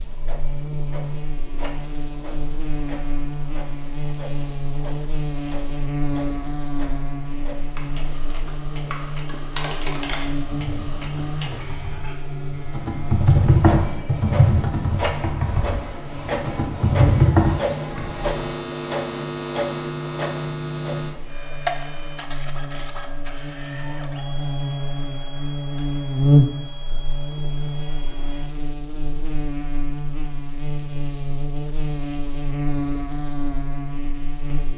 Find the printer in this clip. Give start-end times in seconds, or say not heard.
0.0-28.5.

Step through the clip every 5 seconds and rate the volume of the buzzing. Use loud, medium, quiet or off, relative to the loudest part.
medium, medium, medium, medium, medium, loud, medium.